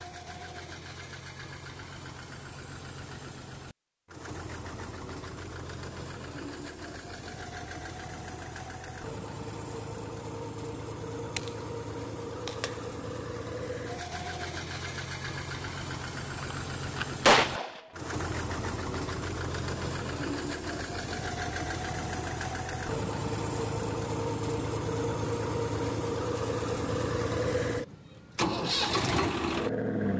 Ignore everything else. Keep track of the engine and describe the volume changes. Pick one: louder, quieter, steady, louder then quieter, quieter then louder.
louder.